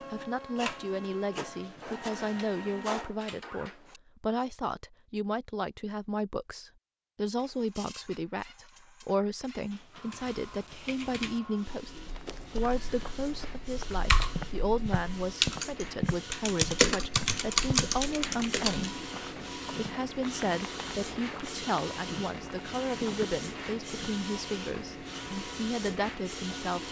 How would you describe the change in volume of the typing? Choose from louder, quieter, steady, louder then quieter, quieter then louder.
quieter then louder.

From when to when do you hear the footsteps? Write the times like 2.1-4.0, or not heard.
12.1-24.1.